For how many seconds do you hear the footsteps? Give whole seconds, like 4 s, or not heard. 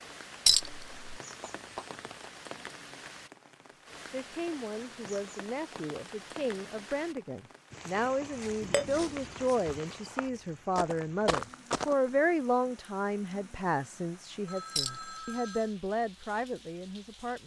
4 s.